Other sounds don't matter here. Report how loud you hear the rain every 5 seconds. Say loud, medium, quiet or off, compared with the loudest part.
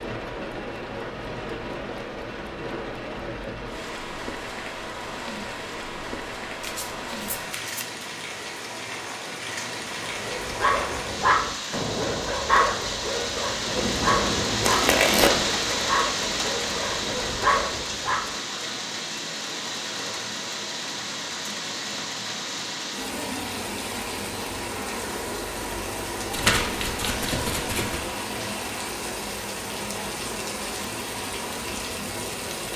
medium, medium, loud, loud, loud, loud, loud.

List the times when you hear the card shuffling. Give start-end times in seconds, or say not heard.
6.6-8.1, 13.8-15.4, 26.3-28.0.